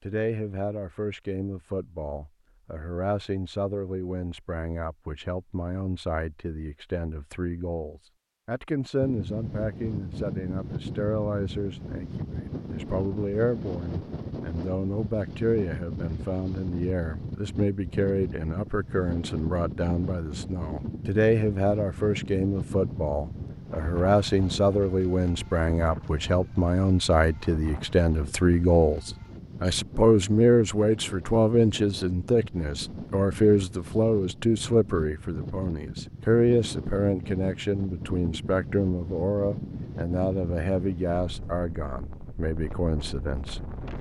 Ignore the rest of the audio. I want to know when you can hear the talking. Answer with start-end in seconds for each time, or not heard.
0.0-43.6.